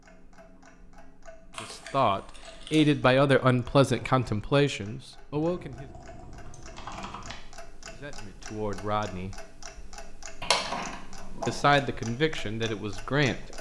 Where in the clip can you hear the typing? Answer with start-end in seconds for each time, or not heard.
1.5-3.0, 5.3-7.3, 10.4-11.8.